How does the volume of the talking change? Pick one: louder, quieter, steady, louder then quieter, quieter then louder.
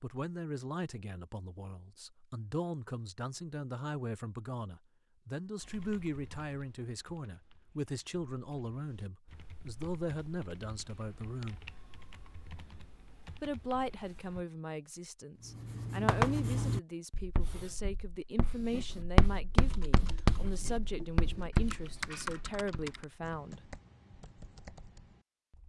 steady.